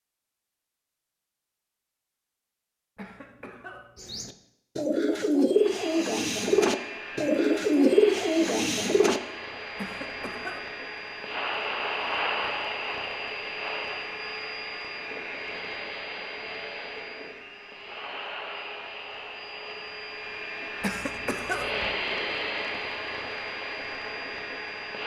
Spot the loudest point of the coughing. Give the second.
21 s.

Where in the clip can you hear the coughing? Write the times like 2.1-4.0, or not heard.
3.0-4.1, 9.8-10.6, 20.8-21.9.